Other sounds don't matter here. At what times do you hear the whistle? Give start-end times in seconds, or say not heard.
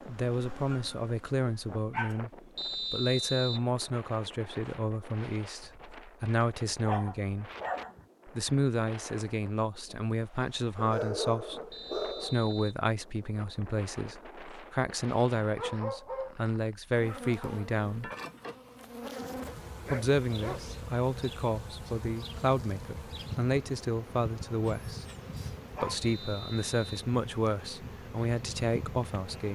2.5-3.7, 11.7-12.8, 26.0-26.9.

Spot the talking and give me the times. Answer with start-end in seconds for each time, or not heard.
0.1-7.5, 8.2-18.1, 19.9-25.1, 25.8-29.5.